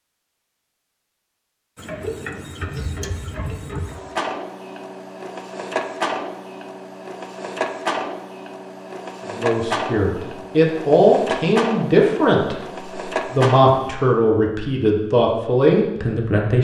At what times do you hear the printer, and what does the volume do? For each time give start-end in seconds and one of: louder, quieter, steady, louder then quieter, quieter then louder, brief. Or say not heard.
1.8-13.9 steady.